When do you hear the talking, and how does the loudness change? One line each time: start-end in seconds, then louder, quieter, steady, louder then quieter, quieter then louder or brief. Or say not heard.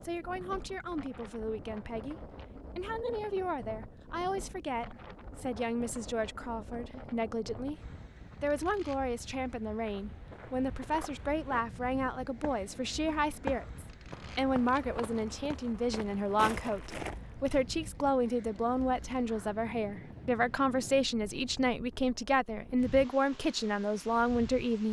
0.0-24.8 louder.